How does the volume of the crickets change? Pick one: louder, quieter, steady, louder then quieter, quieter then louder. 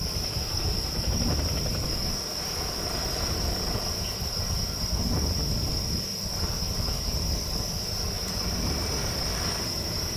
steady.